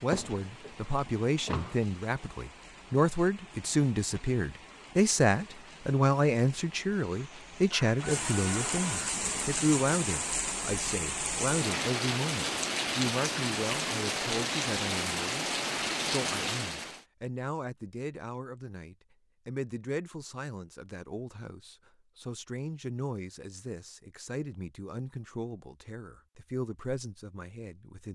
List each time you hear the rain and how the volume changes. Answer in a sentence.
You can hear the rain from 0.0 to 17.1 s, getting louder.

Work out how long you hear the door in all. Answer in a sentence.
You can hear the door for 2 seconds altogether.